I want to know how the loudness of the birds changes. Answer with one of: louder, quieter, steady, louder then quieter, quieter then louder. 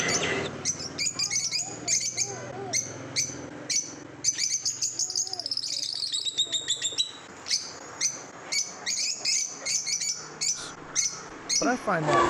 steady.